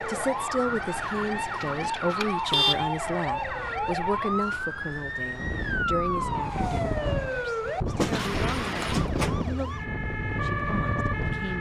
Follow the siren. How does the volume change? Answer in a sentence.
The volume of the siren stays about the same.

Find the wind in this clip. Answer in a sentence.
The wind can be heard from 0.0 to 11.5 s.